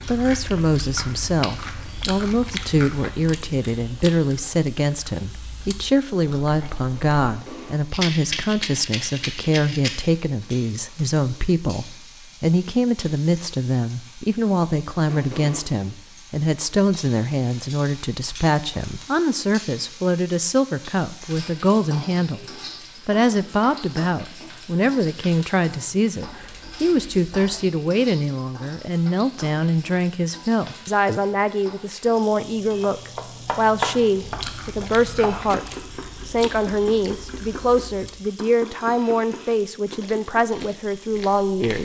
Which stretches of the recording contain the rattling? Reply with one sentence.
You can hear the rattling from 7.9 to 9.9 s.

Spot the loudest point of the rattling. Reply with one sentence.
The volume of the rattling peaks at 8 seconds.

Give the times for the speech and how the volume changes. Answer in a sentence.
You can hear the speech from 0.1 to 41.7 s, at a steady volume.